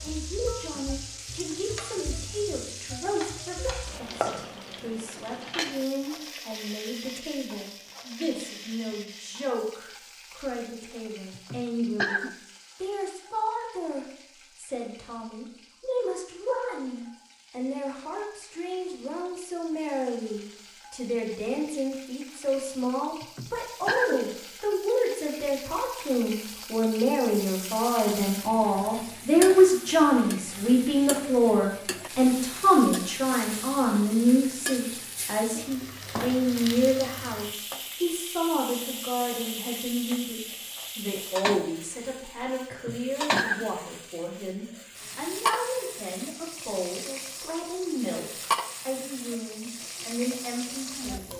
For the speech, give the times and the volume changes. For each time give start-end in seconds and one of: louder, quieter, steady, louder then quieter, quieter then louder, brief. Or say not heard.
0.0-51.3 louder then quieter.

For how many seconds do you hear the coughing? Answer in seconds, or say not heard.
3 s.